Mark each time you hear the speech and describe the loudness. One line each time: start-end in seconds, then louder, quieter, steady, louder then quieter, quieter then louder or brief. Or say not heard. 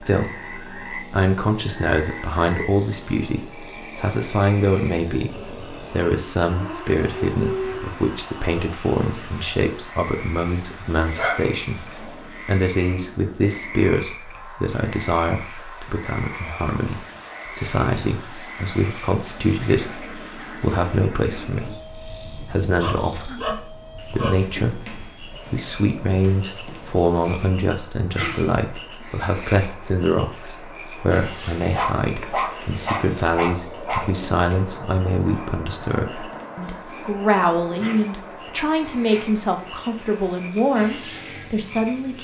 0.0-42.2 steady.